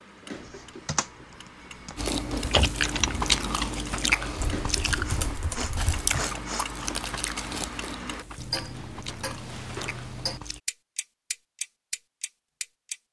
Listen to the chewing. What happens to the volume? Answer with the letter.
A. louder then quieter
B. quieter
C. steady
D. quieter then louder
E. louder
B.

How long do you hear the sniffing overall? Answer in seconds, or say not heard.
2 s.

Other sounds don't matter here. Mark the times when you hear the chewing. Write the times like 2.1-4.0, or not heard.
1.9-10.6.